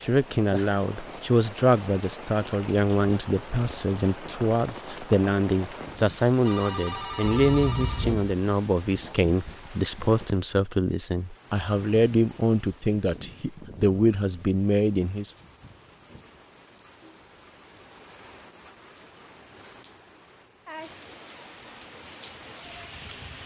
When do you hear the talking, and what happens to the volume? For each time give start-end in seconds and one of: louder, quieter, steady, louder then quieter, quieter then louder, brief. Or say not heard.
0.0-15.3 steady.